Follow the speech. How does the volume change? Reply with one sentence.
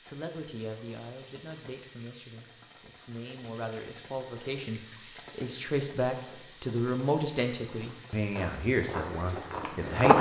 The loudness of the speech goes up.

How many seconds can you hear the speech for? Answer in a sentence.
You can hear the speech for 10 seconds altogether.